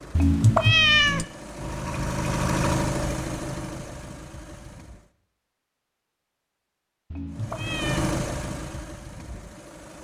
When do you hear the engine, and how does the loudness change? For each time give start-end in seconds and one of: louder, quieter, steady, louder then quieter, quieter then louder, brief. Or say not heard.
0.0-5.1 louder then quieter
7.3-9.9 brief.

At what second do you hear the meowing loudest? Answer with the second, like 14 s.
1 s.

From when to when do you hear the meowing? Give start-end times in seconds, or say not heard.
0.1-1.2, 7.1-8.1.